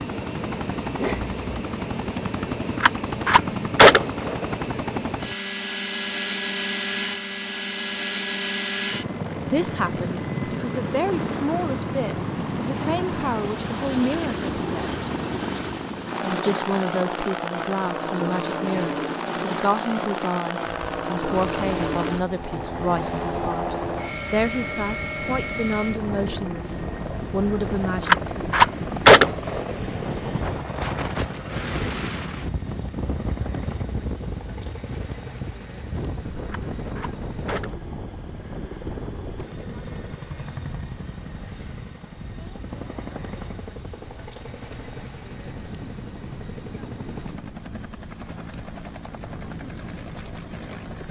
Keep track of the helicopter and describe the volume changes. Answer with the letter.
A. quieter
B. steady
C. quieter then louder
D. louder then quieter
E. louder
A.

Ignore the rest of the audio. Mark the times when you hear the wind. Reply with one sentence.
The wind can be heard from 20.6 to 51.0 s.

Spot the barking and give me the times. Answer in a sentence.
The barking can't be heard in this clip.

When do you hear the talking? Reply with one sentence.
You can hear the talking from 9.5 to 15.0 s and from 16.2 to 28.5 s.